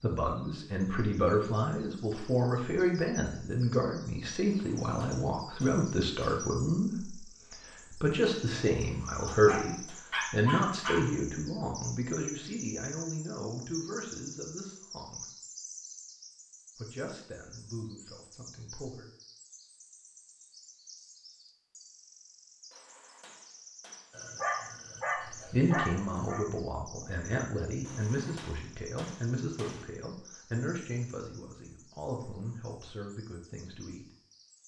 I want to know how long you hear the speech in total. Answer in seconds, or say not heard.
26 s.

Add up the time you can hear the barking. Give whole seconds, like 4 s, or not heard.
4 s.